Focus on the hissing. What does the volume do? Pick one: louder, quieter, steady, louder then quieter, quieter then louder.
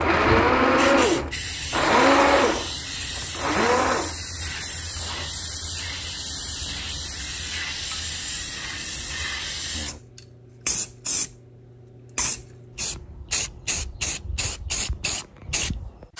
steady.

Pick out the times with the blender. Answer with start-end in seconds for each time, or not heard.
0.0-5.3.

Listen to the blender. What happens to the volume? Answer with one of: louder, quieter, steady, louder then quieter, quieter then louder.
quieter.